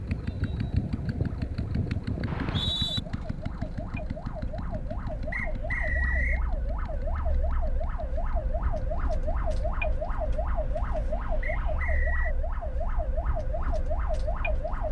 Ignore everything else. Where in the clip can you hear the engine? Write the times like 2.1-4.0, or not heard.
0.0-9.8.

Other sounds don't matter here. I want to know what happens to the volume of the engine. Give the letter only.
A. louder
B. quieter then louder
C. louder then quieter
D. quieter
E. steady
D.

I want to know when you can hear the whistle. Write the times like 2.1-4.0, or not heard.
2.2-3.0, 5.3-6.5, 11.4-12.3.